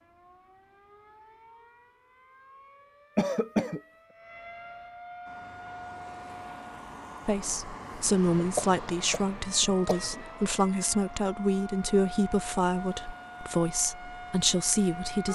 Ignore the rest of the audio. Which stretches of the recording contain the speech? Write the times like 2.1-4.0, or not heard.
7.2-15.3.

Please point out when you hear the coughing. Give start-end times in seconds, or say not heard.
3.1-3.8, 8.3-10.2.